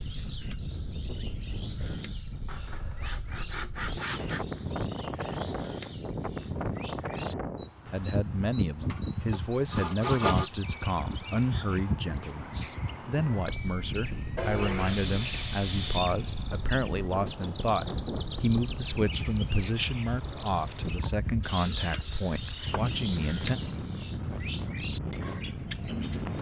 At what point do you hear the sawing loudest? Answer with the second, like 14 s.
10 s.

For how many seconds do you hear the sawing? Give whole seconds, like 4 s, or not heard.
7 s.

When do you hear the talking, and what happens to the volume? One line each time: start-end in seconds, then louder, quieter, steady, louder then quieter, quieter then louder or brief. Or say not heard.
7.9-23.6 steady.